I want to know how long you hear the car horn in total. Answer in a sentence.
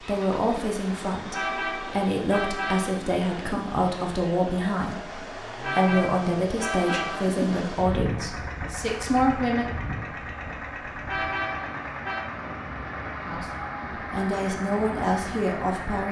The car horn can be heard for 5 seconds in total.